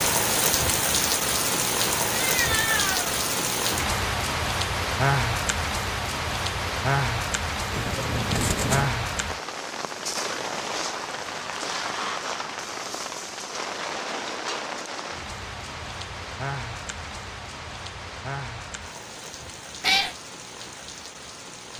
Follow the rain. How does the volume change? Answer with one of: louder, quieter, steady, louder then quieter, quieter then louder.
quieter.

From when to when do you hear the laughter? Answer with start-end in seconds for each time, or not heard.
not heard.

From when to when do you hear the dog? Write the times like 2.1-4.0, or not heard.
not heard.